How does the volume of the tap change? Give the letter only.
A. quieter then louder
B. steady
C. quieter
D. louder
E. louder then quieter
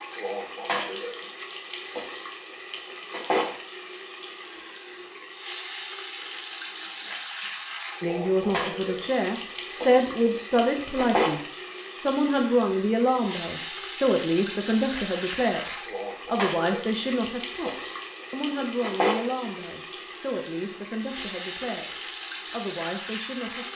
B.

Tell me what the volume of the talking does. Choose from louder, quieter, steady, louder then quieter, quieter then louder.
quieter.